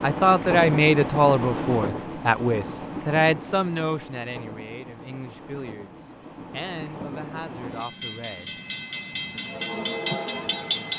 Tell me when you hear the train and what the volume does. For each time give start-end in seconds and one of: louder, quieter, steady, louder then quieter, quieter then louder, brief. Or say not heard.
0.0-10.9 quieter then louder.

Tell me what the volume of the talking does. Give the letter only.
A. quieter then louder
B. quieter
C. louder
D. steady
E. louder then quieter
B.